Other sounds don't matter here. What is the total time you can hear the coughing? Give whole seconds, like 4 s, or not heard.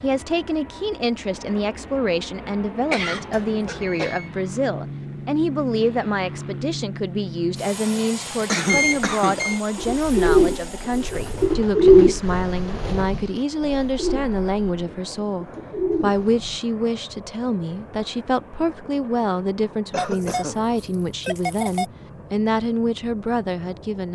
3 s.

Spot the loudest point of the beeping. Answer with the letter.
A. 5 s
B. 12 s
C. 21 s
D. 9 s
D.